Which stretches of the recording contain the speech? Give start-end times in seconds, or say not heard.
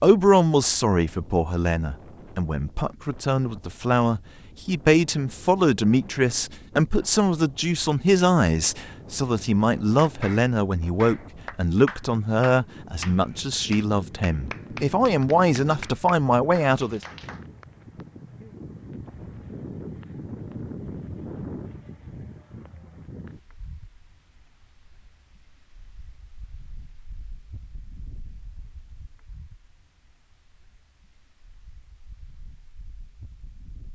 0.0-17.0.